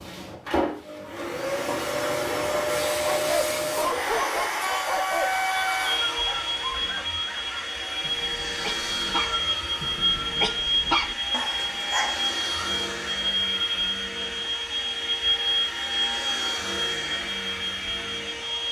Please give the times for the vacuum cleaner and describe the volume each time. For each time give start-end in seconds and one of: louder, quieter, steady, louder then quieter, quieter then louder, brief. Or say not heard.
0.0-18.6 steady.